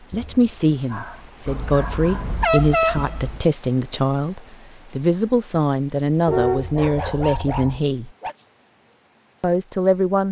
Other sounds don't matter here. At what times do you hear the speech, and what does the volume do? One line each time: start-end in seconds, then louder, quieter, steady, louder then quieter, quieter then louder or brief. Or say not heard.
0.1-8.1 steady
9.4-10.2 brief.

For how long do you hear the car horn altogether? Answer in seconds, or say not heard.
3 s.